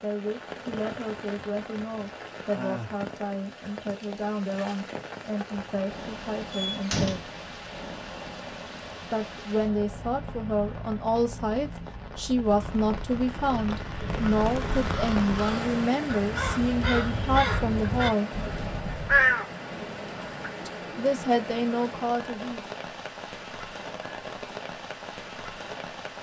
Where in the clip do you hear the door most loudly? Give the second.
7 s.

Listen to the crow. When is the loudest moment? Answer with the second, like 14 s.
19 s.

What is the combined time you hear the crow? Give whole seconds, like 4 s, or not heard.
7 s.